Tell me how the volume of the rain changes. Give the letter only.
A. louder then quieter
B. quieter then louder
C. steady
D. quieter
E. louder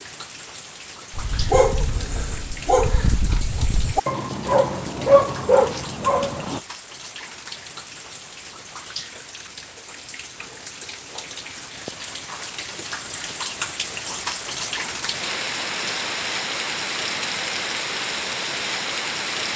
E.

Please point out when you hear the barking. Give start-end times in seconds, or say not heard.
1.1-6.6.